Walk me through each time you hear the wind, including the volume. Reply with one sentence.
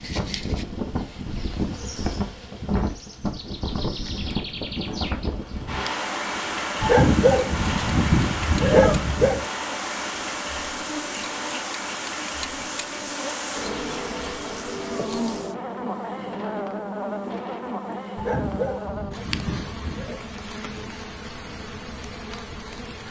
You can hear the wind from 0.0 to 23.0 s, getting quieter.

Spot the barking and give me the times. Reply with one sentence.
The barking can be heard from 6.8 to 9.4 s and from 18.1 to 20.2 s.